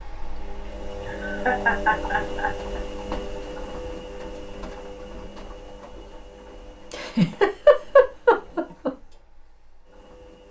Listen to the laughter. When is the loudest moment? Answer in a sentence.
The loudest moment of the laughter is at 8 seconds.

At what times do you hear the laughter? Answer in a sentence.
You can hear the laughter from 1.1 to 2.5 s and from 6.9 to 8.9 s.